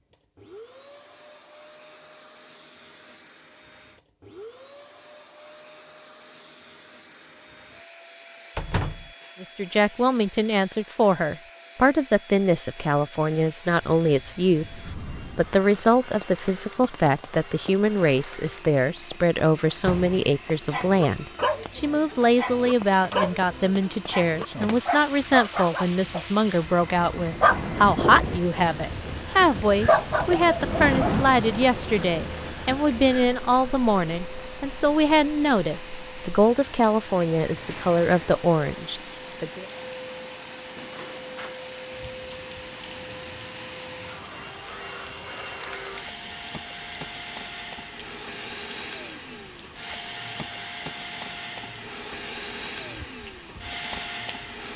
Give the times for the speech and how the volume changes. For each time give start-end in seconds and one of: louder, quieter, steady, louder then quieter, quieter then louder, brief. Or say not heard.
9.4-39.6 steady.